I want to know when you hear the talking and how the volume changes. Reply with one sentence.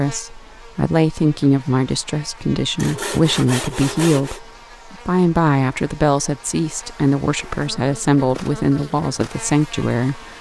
You can hear the talking from 0.0 to 10.3 s, at a steady volume.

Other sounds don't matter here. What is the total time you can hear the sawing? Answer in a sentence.
You can hear the sawing for 2 seconds altogether.